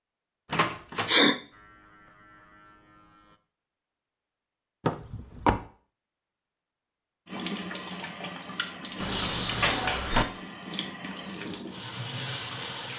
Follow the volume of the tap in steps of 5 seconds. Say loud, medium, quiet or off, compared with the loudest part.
off, loud, loud.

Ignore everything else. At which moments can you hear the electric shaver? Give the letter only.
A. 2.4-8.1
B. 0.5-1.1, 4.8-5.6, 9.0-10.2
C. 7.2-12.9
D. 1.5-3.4
D.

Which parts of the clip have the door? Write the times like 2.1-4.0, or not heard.
0.5-1.1, 4.8-5.6, 9.0-10.2.